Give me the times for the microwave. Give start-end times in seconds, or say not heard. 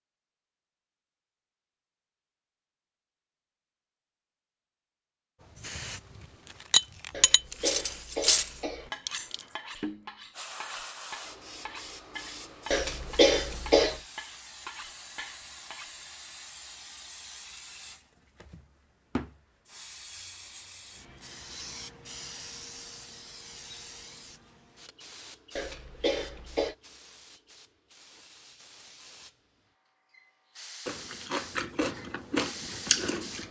not heard.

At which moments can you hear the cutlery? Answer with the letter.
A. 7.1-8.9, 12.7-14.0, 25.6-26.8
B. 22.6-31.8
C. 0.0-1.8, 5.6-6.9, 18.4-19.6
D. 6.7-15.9
D.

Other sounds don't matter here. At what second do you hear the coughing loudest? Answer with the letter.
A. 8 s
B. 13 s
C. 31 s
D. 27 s
B.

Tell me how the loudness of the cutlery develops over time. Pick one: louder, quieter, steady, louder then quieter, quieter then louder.
quieter.